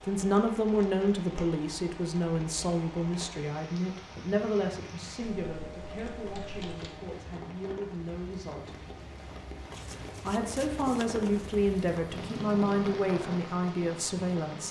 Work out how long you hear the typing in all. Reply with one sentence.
You can hear the typing for 2 seconds altogether.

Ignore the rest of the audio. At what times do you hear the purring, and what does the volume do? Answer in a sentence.
You can't hear the purring here.